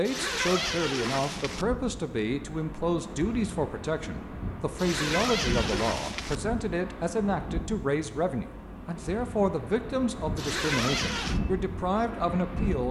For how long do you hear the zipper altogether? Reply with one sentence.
You can hear the zipper for 4 seconds altogether.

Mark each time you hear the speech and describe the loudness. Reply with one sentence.
You can hear the speech from 0.0 to 12.8 s, at a steady volume.